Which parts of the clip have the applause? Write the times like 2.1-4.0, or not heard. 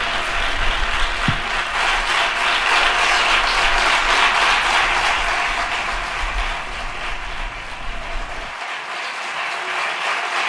0.0-10.4.